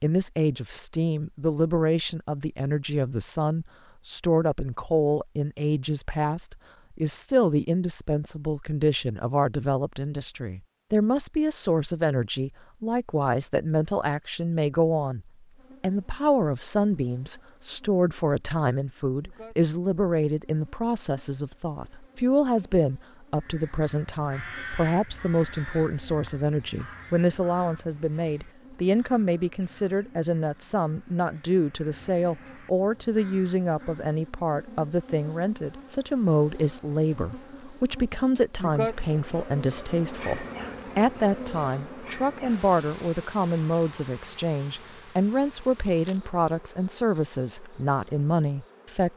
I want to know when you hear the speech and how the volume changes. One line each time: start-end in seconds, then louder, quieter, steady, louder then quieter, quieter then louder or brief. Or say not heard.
0.0-49.1 steady.